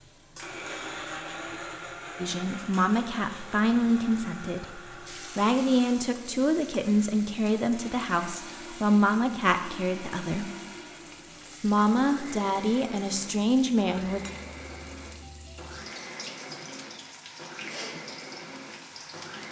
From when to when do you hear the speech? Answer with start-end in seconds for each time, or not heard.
2.2-10.4, 11.6-14.2.